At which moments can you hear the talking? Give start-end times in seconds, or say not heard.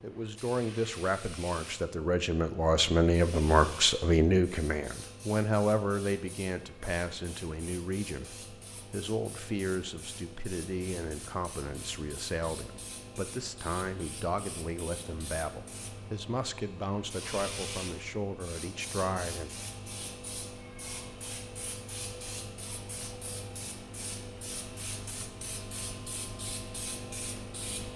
0.0-19.5.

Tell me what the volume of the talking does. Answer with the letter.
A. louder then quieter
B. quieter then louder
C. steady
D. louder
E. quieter
E.